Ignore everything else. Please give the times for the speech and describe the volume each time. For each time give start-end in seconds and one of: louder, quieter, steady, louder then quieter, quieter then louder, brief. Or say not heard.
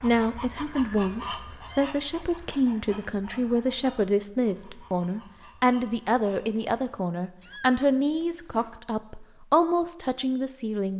0.0-10.9 steady.